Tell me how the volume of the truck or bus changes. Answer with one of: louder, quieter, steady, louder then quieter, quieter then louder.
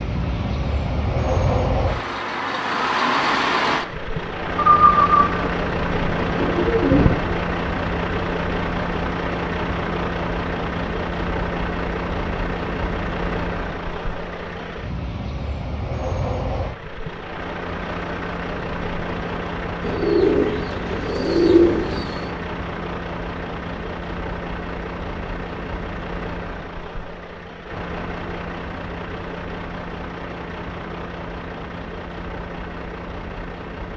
quieter.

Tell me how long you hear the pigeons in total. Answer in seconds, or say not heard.
5 s.